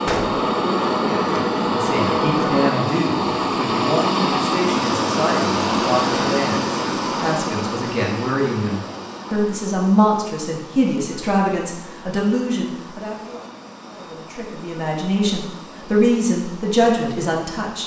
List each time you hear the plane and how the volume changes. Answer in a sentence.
The plane can be heard from 0.0 to 17.8 s, getting quieter.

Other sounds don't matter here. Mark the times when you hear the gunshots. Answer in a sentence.
You can hear the gunshots from 0.1 to 0.5 s.